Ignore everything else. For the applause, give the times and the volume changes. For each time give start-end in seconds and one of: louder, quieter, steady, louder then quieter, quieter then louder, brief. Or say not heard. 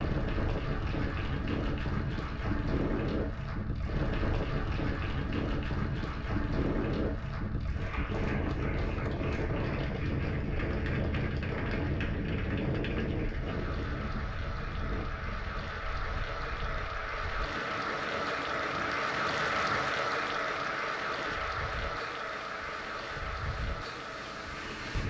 0.0-25.0 louder.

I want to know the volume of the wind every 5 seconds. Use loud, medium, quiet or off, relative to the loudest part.
loud, loud, loud, medium, medium.